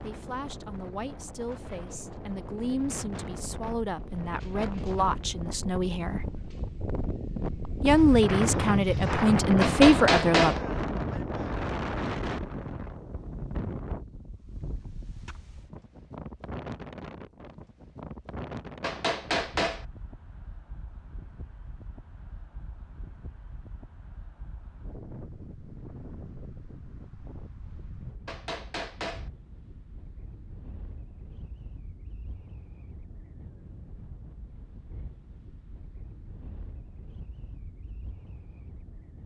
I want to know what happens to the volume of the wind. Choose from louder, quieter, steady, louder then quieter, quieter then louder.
louder then quieter.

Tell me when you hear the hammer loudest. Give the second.
10 s.